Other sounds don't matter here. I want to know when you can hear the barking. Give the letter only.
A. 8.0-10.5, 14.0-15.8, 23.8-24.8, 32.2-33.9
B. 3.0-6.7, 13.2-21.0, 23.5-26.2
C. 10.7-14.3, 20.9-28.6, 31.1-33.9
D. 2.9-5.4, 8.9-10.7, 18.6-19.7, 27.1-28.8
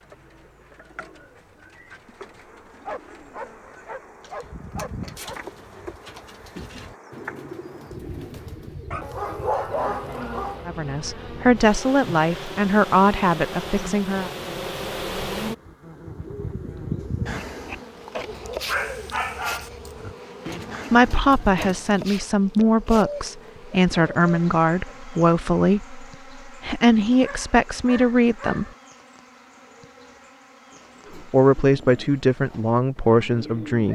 D.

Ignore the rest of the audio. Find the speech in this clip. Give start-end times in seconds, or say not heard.
10.7-14.3, 20.9-28.6, 31.1-33.9.